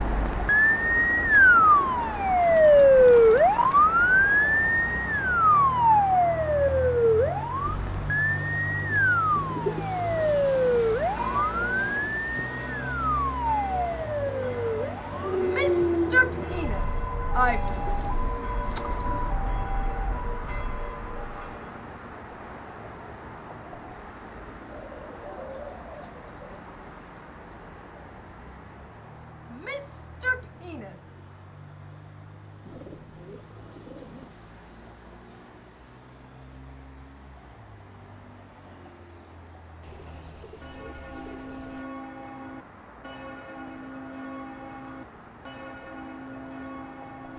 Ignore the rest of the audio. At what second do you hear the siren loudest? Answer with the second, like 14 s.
3 s.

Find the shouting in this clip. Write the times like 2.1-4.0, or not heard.
15.4-17.6, 29.5-31.1.